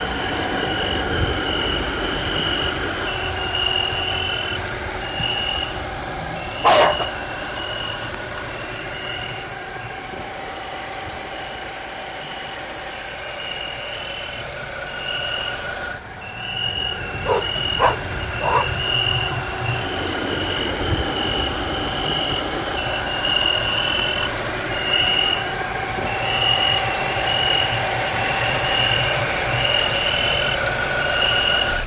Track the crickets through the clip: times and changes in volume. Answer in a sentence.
You can hear the crickets from 0.0 to 31.8 s, getting quieter then louder.